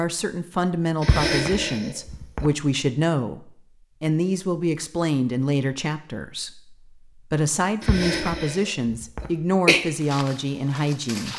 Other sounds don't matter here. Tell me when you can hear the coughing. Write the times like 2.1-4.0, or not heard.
1.0-2.5, 7.8-9.8.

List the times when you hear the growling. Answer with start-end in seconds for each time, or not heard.
not heard.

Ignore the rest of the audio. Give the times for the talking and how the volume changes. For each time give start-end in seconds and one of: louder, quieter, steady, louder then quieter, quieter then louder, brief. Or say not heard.
0.0-11.3 steady.